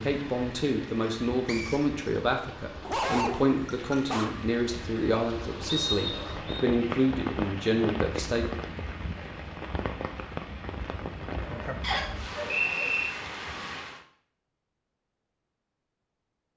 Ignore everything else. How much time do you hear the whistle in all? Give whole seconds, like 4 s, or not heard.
3 s.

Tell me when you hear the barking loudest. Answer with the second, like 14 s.
3 s.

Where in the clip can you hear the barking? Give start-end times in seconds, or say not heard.
2.8-4.3, 11.4-13.1.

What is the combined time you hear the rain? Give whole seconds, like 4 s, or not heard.
14 s.